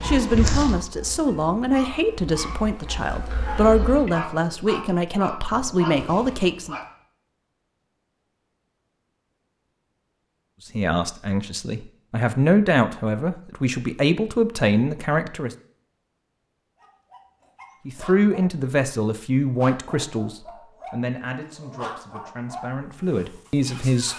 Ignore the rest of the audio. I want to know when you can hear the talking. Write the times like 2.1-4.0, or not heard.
0.0-6.8, 10.8-15.6, 17.9-24.1.